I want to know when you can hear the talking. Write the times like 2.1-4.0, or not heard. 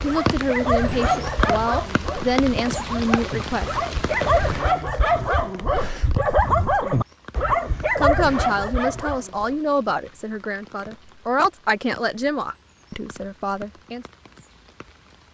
0.0-3.7, 7.5-14.1.